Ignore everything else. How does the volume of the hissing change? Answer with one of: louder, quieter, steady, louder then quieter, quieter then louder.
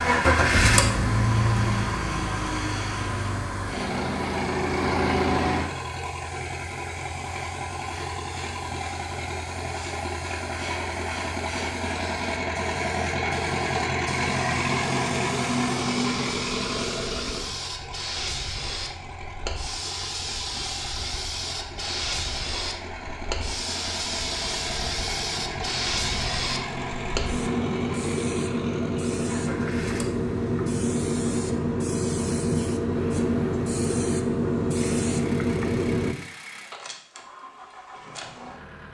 louder.